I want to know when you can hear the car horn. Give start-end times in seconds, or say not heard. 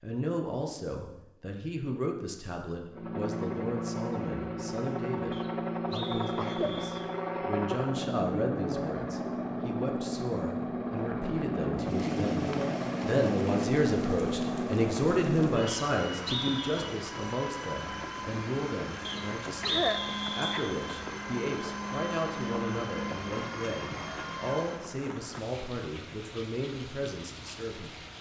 not heard.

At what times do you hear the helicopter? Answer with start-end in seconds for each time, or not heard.
2.9-24.9.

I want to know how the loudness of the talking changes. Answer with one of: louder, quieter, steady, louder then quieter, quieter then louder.
louder then quieter.